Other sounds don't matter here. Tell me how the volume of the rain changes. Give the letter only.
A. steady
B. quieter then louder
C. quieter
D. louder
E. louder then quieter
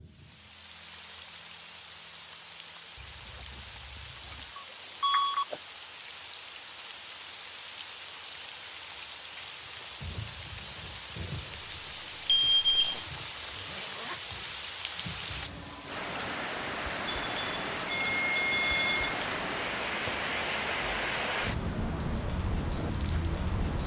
D.